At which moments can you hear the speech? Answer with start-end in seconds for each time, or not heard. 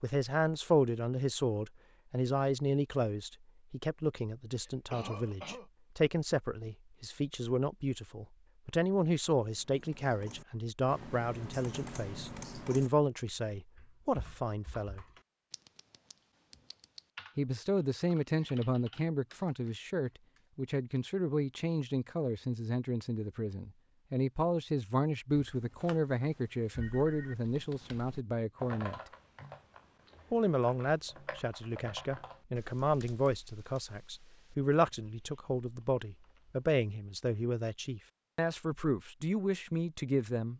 0.0-15.1, 17.4-29.0, 30.3-40.5.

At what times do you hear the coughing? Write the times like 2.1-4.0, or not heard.
4.2-5.7.